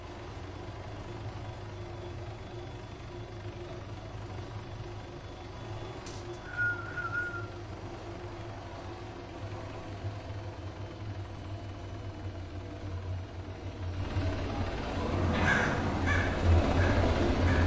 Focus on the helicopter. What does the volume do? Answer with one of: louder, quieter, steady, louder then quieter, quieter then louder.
louder.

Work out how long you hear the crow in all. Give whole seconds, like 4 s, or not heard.
3 s.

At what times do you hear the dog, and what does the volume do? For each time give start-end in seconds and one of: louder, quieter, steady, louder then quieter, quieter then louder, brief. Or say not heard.
not heard.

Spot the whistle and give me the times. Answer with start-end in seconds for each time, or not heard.
6.0-7.5.